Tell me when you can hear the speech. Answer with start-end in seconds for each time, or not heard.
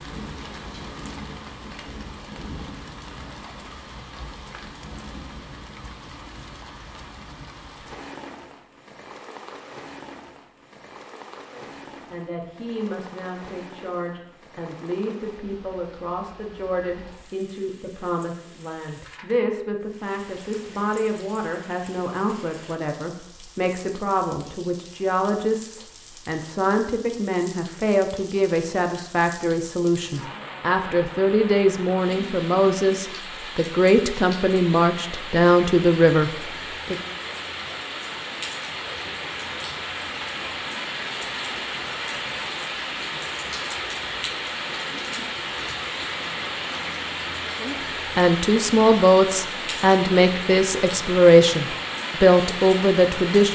11.5-37.0, 47.6-53.4.